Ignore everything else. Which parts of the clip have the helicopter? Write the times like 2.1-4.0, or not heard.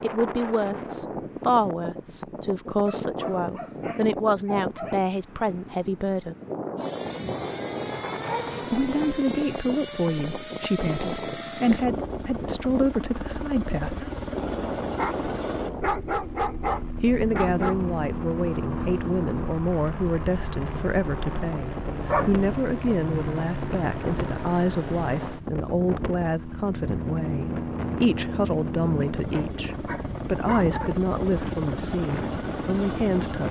6.8-33.4.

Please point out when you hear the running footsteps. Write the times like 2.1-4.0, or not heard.
not heard.